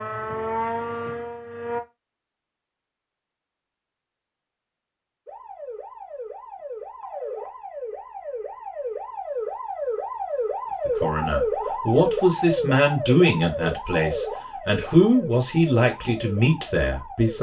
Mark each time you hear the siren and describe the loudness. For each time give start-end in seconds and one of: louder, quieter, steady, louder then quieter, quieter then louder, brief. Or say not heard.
0.0-1.8 brief
5.2-17.3 louder then quieter.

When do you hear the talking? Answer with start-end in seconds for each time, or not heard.
10.8-17.3.